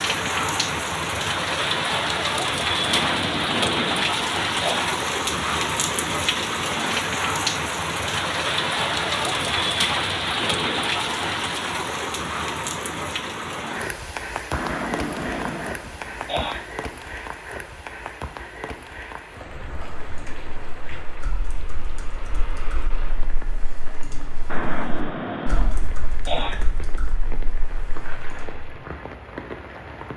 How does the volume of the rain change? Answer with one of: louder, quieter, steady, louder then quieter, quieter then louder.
quieter.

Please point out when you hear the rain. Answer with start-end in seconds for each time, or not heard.
0.0-30.1.